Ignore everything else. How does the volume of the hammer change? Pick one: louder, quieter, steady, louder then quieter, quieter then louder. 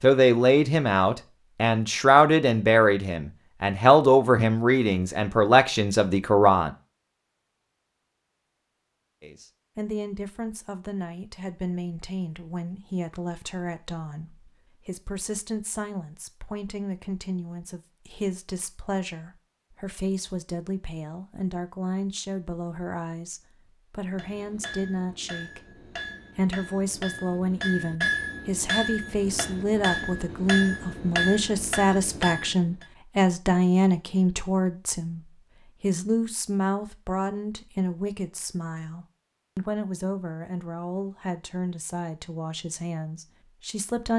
louder.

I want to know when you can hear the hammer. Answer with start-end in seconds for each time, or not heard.
24.1-32.9.